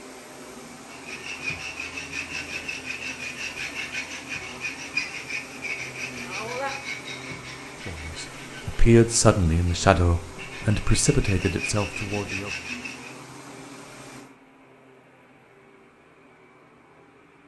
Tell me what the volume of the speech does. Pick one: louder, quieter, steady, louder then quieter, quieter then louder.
quieter.